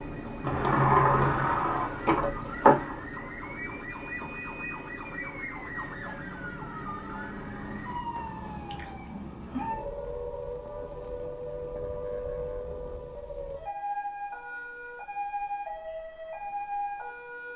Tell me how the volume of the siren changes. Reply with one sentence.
The loudness of the siren stays about the same.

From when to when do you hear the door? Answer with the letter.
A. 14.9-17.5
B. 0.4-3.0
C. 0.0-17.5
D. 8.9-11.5
B.